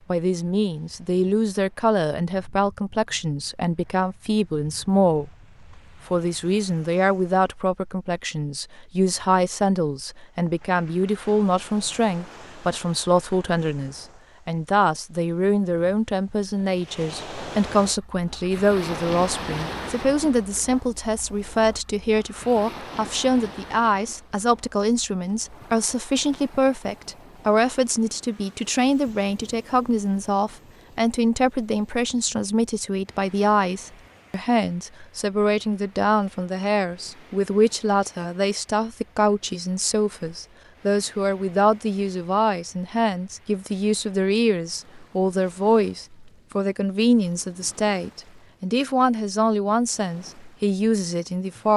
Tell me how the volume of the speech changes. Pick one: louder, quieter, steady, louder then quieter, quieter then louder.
steady.